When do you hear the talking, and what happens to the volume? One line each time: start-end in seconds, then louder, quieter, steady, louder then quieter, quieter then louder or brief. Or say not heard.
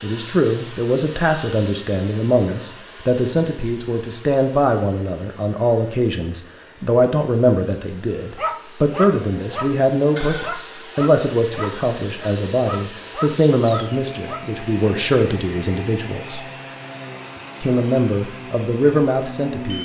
0.0-16.4 steady
17.6-19.7 brief.